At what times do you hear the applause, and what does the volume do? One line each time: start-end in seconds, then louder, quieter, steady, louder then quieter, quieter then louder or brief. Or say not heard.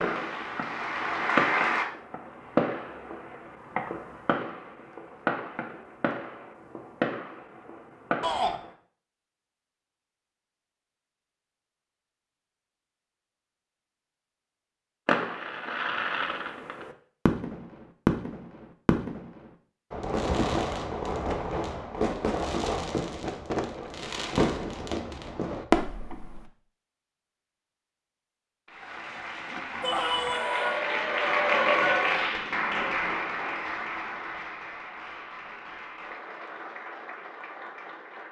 0.0-1.9 brief
28.6-38.2 louder then quieter.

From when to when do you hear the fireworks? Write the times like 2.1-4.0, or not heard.
0.0-8.7, 15.1-26.4.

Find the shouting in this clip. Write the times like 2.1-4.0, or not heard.
8.2-8.6, 29.8-30.8.